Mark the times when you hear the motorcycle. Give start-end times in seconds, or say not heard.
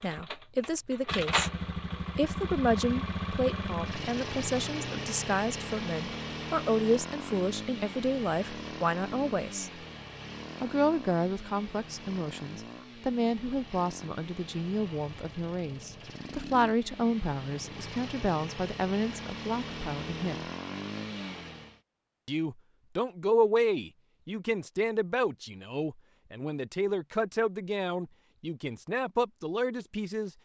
0.0-21.8.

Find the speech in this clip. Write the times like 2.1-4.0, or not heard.
0.0-1.5, 2.1-9.7, 10.6-20.4, 22.2-30.3.